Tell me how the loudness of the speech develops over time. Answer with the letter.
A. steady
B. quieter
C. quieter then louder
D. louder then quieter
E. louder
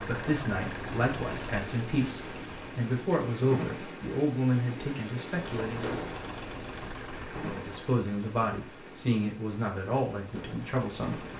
A.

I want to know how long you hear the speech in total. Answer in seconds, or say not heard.
10 s.